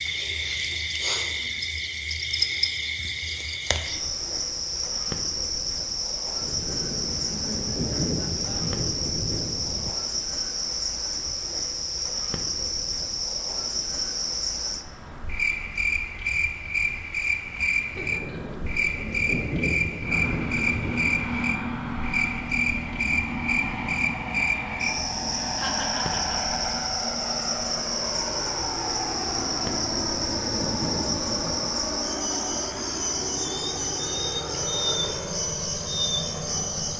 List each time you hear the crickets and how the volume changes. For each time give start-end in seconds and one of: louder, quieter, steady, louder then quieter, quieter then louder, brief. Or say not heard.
0.0-36.9 steady.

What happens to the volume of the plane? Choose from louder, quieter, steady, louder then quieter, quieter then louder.
steady.